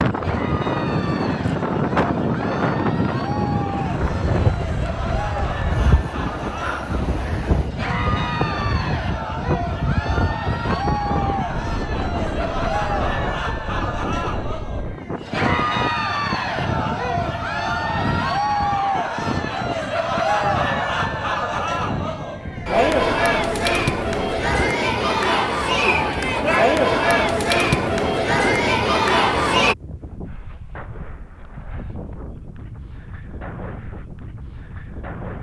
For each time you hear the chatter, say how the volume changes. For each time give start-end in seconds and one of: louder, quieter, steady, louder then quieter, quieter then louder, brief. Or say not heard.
0.1-29.8 louder.